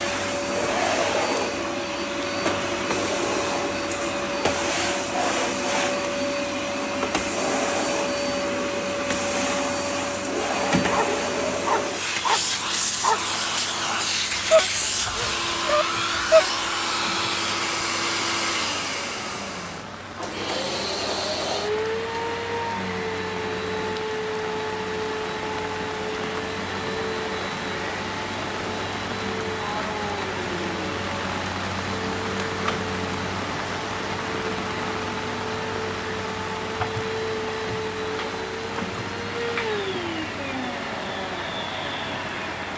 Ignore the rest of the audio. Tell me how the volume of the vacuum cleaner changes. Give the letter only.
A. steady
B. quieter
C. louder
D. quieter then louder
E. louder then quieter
B.